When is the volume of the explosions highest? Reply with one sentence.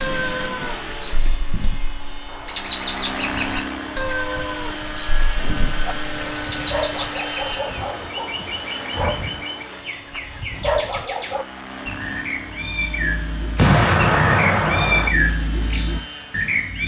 The volume of the explosions peaks at 14 seconds.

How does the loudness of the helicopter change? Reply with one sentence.
The loudness of the helicopter goes down.